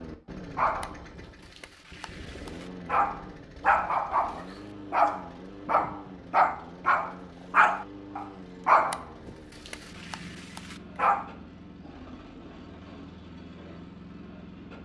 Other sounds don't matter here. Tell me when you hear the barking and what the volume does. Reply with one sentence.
The barking can be heard from 0.6 to 11.3 s, getting louder then quieter.